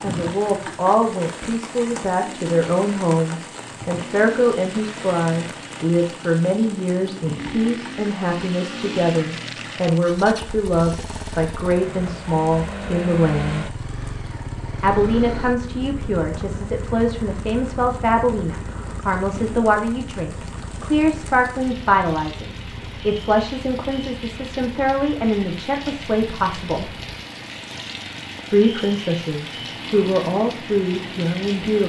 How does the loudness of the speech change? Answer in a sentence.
The loudness of the speech stays about the same.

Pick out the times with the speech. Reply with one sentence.
You can hear the speech from 0.0 to 13.8 s, from 14.8 to 26.9 s and from 28.5 to 31.8 s.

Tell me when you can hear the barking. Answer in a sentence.
The barking can't be heard in this clip.